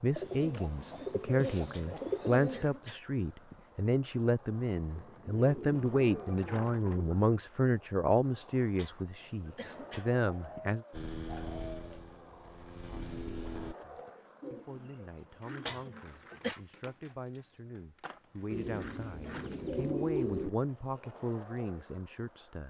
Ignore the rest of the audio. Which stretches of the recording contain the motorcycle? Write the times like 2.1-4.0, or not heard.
10.9-13.8.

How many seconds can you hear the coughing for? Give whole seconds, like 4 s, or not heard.
5 s.